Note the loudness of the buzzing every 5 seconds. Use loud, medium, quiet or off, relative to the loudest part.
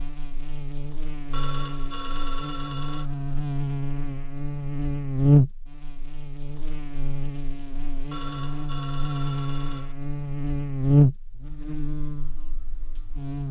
medium, loud, loud.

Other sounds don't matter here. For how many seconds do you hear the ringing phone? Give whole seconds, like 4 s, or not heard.
4 s.